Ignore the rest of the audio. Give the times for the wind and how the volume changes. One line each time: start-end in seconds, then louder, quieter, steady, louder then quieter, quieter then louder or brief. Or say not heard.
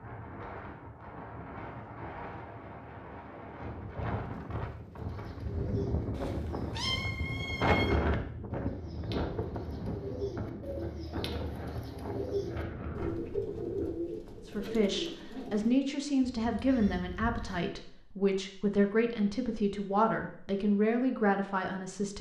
0.0-14.0 louder then quieter.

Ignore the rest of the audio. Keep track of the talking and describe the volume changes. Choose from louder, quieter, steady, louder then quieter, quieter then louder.
steady.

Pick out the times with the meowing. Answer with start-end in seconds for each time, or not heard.
6.1-8.0, 16.2-17.6.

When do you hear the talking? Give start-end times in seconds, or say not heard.
14.4-22.1.